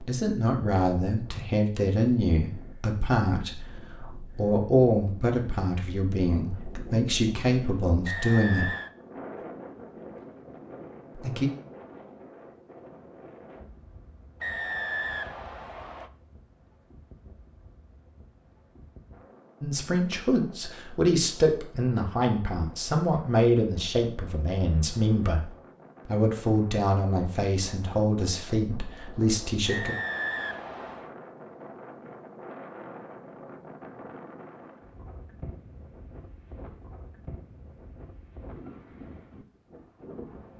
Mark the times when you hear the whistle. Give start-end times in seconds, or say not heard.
8.1-8.9, 14.4-16.1, 29.6-31.1.